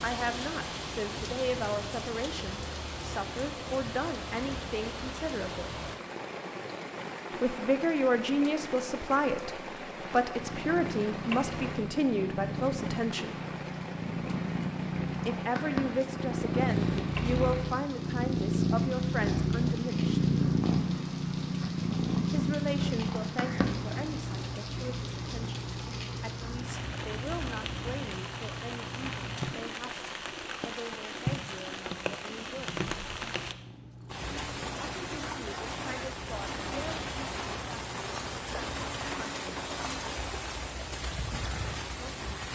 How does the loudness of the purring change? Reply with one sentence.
The loudness of the purring goes up, then down.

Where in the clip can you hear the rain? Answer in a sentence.
You can hear the rain from 0.0 to 42.5 s.